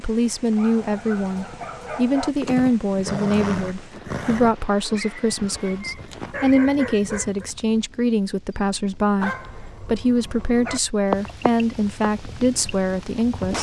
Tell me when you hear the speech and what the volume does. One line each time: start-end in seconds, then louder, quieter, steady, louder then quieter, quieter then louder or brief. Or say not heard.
0.0-13.5 steady.